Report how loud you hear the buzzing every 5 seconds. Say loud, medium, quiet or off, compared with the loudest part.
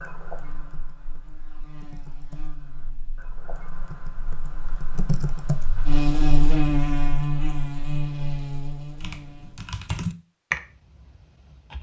quiet, loud, off.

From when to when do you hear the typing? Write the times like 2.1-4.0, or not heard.
0.0-6.0, 9.0-11.7.